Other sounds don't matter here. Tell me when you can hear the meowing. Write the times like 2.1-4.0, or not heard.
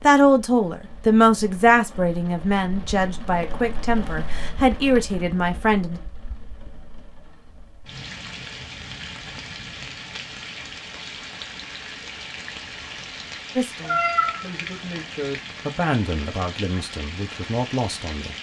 13.8-14.4.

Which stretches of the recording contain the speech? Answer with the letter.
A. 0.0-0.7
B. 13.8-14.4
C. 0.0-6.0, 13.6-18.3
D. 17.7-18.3
C.